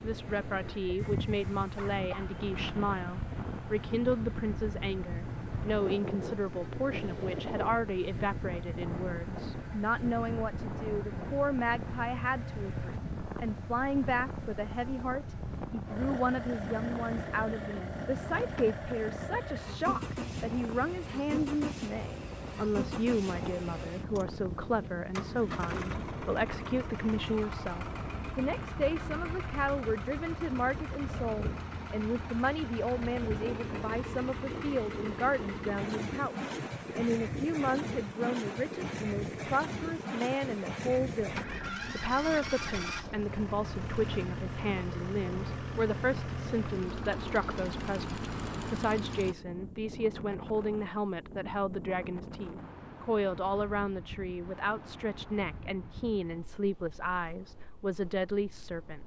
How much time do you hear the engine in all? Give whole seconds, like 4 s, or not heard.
49 s.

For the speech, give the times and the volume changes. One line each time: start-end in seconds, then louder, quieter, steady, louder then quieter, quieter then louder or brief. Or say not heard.
0.0-59.0 steady.